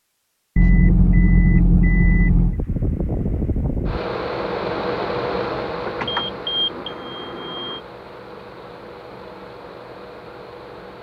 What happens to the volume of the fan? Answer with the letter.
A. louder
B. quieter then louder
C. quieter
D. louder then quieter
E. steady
C.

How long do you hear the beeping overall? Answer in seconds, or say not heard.
4 s.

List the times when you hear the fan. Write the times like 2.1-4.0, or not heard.
2.4-10.9.